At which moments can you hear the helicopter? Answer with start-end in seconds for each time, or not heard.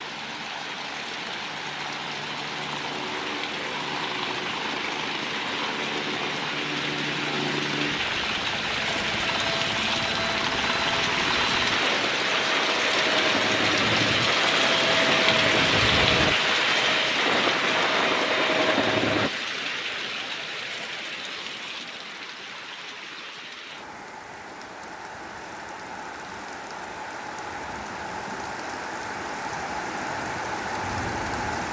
0.0-19.3.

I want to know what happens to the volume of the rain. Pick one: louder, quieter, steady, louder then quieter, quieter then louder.
louder then quieter.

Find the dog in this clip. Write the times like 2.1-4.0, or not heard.
not heard.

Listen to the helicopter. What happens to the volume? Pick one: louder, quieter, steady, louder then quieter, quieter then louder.
louder.